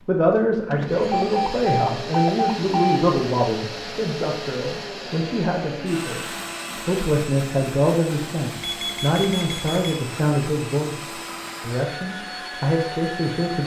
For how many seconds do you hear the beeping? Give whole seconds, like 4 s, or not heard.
3 s.